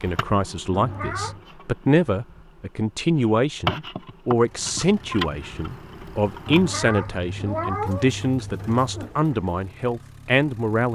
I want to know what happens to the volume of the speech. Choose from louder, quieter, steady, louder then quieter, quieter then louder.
steady.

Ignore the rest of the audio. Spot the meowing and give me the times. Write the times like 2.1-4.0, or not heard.
0.7-1.4, 6.5-9.1.